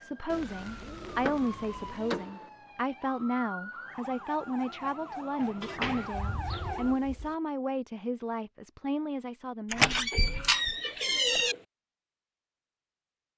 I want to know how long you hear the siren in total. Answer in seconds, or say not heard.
7 s.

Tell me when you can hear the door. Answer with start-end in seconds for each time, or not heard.
1.1-2.5, 5.4-6.7, 9.7-11.6.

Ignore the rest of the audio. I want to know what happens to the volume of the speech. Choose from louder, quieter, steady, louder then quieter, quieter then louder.
steady.